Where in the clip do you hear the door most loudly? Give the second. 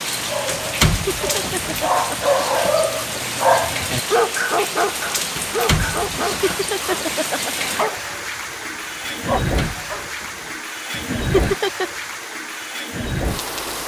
1 s.